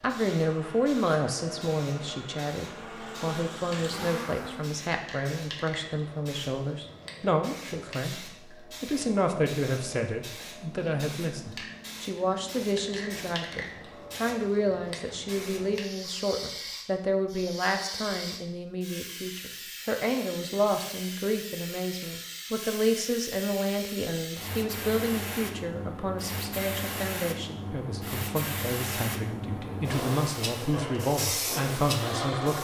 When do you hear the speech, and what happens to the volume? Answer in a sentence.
You can hear the speech from 0.0 to 32.6 s, at a steady volume.